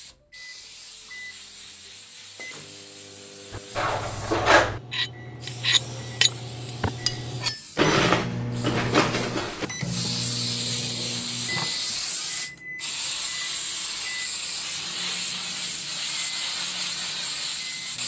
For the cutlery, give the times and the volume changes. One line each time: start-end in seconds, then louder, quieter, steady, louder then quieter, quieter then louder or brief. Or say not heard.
3.5-9.7 steady.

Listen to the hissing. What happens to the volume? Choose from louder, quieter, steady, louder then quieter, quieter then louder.
louder.